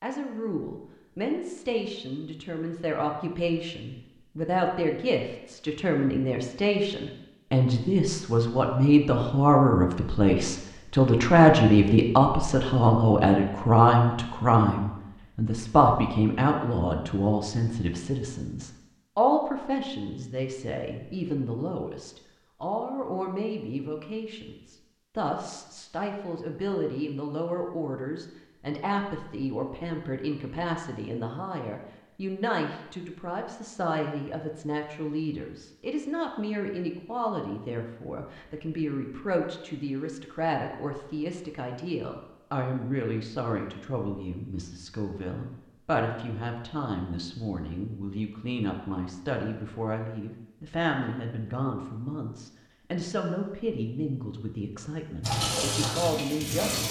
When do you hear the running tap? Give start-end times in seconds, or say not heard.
55.2-56.8.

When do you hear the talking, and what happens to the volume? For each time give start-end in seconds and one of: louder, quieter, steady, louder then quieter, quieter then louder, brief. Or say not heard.
0.0-56.8 quieter.